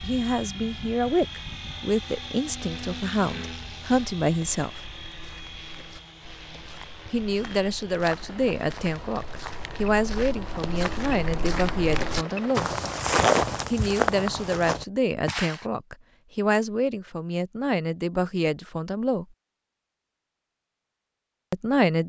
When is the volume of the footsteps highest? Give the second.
13 s.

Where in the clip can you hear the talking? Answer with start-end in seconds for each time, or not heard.
0.0-5.0, 7.1-12.7, 13.7-19.2, 21.5-22.0.